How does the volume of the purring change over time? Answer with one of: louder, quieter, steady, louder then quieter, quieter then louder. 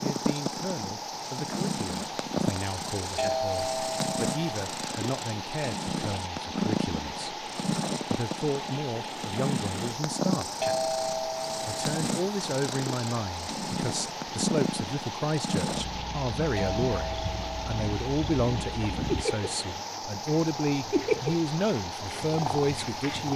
steady.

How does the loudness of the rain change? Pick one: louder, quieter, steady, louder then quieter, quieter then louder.
steady.